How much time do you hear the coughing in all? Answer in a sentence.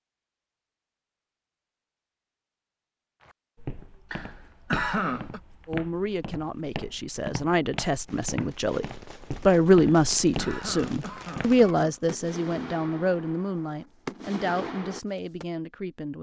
You can hear the coughing for 4 seconds altogether.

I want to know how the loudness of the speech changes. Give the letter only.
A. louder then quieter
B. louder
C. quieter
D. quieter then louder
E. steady
A.